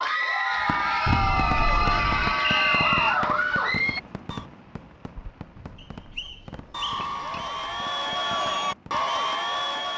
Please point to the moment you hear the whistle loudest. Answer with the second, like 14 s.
3 s.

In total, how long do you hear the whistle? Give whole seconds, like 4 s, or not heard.
2 s.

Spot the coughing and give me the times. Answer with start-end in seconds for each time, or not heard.
not heard.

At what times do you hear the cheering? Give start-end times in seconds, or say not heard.
0.0-4.5, 6.2-9.9.